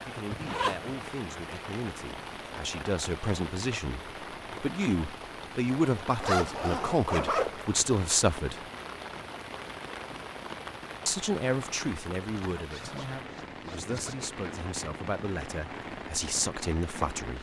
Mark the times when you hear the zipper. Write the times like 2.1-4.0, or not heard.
0.3-0.9, 6.2-7.7, 12.5-14.2.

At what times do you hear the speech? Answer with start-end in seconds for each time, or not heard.
0.0-8.6, 11.1-17.3.